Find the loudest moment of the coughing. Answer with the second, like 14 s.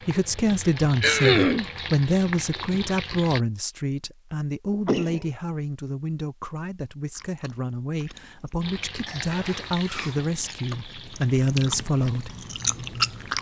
1 s.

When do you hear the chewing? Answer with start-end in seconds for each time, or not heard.
7.2-8.7, 10.2-13.3.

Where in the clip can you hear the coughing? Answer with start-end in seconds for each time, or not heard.
1.0-1.6, 4.7-5.3, 9.1-10.3.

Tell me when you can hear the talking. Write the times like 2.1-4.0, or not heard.
0.1-12.3.